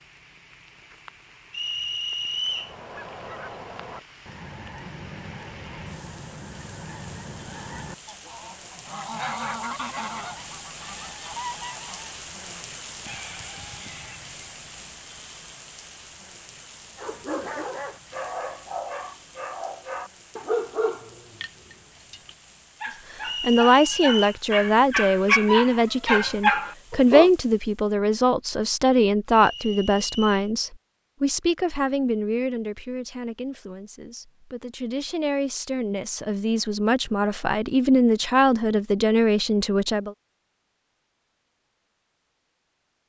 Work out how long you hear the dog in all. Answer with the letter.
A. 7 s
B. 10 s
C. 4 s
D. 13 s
B.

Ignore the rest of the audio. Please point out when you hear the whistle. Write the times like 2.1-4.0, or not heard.
1.5-2.8, 23.2-24.4, 29.3-30.5.